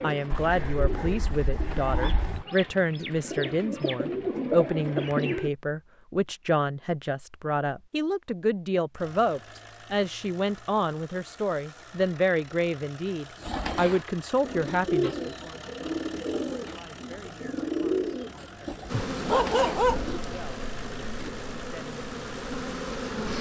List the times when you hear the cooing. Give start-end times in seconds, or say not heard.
0.0-5.5, 13.3-20.2.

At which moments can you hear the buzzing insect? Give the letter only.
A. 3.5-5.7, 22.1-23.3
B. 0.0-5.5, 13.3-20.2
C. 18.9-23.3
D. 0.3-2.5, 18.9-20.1
C.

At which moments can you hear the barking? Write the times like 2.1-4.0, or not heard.
0.3-2.5, 18.9-20.1.